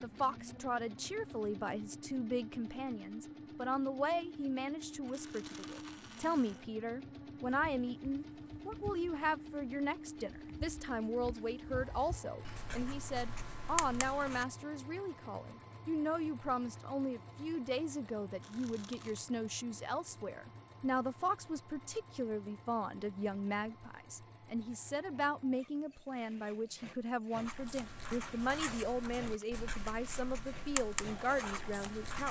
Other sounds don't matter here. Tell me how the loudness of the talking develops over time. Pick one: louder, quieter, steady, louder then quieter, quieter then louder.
steady.